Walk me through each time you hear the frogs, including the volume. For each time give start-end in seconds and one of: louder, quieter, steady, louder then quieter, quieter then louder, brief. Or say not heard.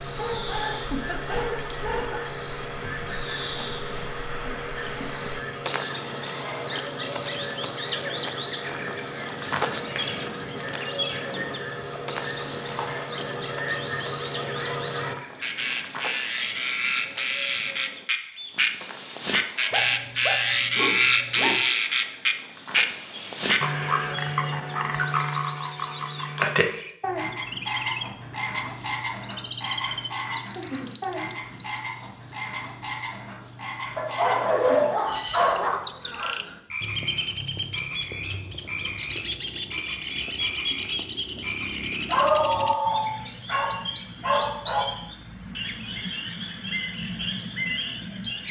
0.0-48.4 louder then quieter.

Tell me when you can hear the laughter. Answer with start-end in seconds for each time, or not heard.
not heard.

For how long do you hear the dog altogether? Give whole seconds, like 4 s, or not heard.
10 s.